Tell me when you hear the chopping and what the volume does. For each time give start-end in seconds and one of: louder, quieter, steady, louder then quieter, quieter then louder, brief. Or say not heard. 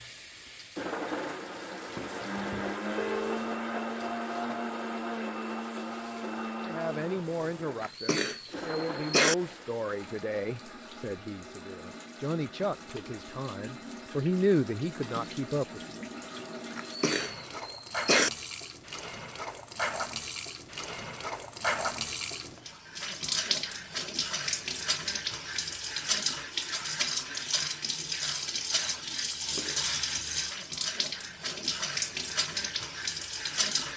not heard.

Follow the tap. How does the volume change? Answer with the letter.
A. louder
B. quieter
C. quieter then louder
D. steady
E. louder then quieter
A.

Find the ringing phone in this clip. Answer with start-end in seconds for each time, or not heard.
3.0-3.6.